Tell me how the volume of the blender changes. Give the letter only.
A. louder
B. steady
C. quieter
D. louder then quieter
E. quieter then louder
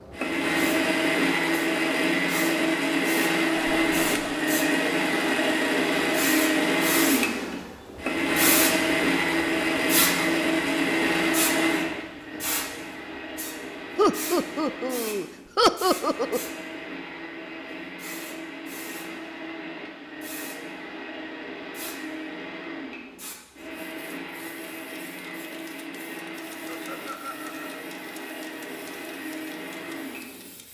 C.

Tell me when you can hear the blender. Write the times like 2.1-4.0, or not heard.
0.0-30.6.